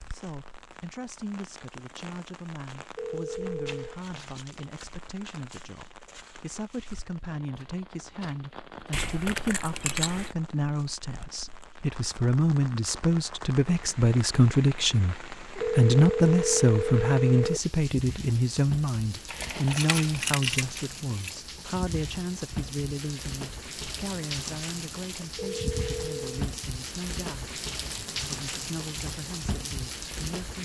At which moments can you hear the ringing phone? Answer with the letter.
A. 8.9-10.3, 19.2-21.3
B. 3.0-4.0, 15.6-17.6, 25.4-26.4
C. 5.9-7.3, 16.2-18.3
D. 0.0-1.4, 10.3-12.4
B.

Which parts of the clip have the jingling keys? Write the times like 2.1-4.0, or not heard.
8.9-10.3, 19.2-21.3.